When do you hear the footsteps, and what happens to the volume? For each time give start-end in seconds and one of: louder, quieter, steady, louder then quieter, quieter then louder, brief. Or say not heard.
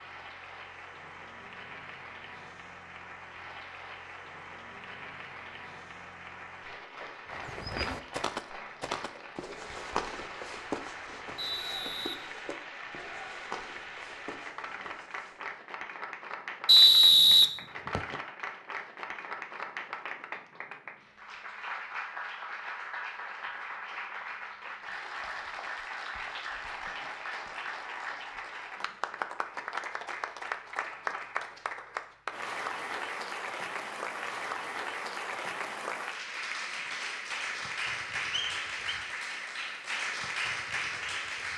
7.3-15.7 quieter.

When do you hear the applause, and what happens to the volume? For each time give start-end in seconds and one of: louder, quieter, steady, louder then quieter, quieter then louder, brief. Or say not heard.
0.0-41.5 louder.